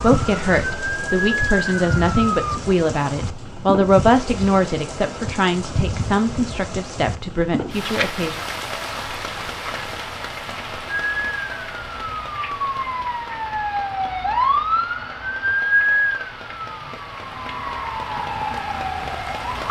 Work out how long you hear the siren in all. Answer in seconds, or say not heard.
11 s.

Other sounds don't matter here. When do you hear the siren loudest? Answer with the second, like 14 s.
16 s.